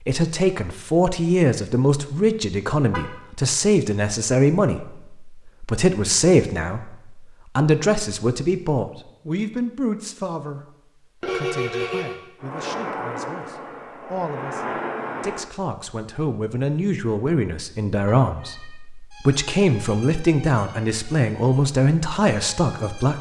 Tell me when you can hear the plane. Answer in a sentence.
The plane can be heard from 12.4 to 15.5 s.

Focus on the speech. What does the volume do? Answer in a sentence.
The loudness of the speech goes down, then up.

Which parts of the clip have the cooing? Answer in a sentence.
The cooing can't be heard in this clip.